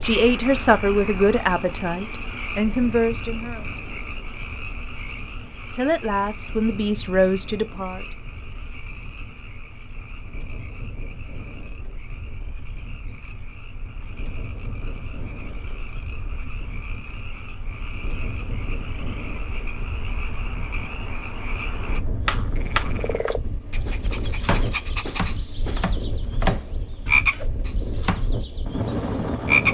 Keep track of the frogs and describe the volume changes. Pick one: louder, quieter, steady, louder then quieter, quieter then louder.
quieter then louder.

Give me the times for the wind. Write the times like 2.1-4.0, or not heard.
0.0-29.6.